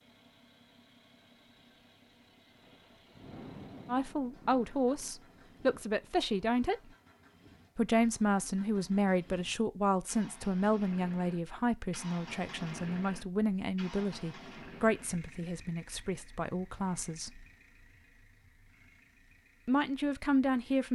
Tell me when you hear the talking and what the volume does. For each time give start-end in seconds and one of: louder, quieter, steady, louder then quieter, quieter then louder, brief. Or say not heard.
3.9-6.8 brief
7.8-17.4 quieter
19.6-20.8 brief.